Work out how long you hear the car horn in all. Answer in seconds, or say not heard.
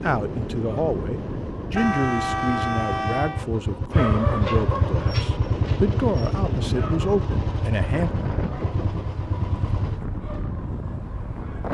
2 s.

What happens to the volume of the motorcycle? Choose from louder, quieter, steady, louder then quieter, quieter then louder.
louder then quieter.